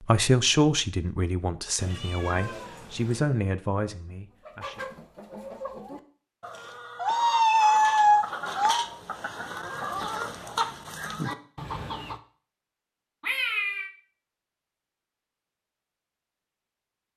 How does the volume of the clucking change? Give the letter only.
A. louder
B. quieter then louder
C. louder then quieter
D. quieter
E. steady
A.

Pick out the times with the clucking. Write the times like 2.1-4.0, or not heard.
4.3-12.2.